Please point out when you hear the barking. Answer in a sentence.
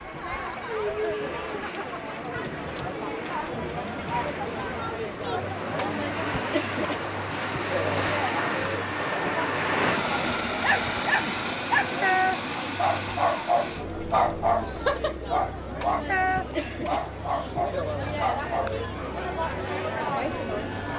The barking can be heard from 10.6 to 18.8 s.